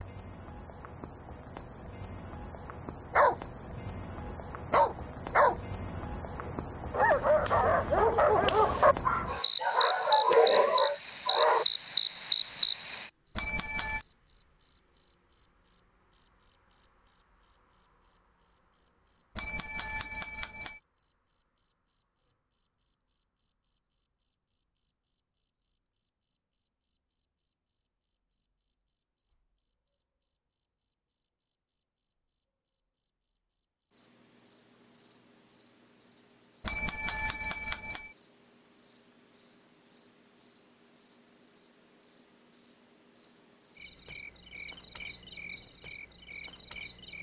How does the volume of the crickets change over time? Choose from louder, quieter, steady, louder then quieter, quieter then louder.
louder then quieter.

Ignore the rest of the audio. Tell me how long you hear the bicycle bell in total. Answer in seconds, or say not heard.
4 s.